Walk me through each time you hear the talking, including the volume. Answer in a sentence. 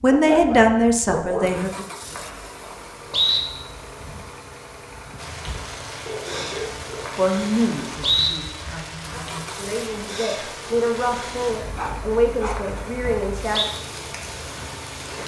The talking can be heard briefly from 0.0 to 1.7 s; and from 7.2 to 13.7 s, getting quieter then louder.